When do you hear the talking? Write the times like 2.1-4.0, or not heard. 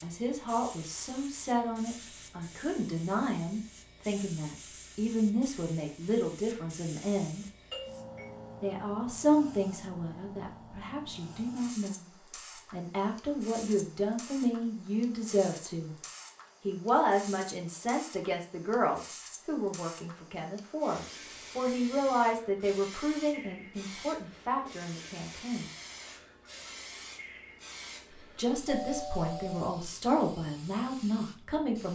0.0-7.5, 8.6-12.1, 12.7-15.9, 16.6-25.7, 28.1-31.8.